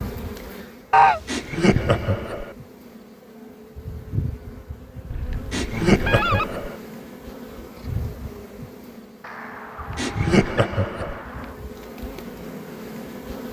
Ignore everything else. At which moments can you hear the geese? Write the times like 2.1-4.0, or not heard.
0.9-1.4, 5.1-6.6, 9.2-11.6.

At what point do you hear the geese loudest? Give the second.
1 s.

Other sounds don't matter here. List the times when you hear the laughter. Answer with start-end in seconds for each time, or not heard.
1.2-2.5, 5.5-6.8, 9.9-11.2.